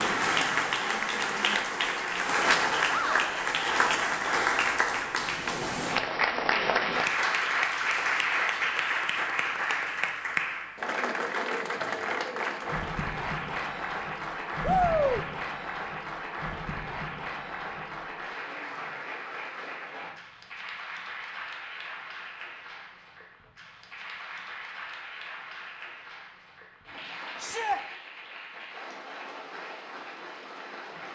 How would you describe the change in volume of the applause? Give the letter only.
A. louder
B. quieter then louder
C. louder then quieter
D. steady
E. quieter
E.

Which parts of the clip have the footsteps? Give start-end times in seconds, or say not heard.
not heard.